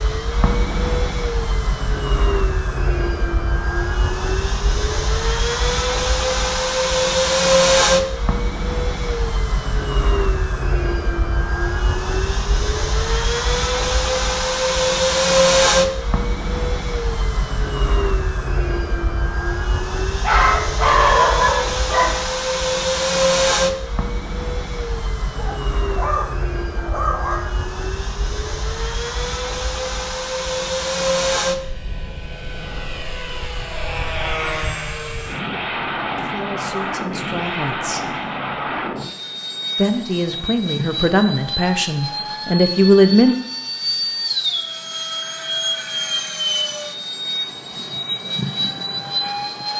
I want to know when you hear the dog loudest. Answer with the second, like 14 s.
21 s.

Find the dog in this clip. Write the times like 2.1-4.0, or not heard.
20.2-22.1, 25.4-27.4.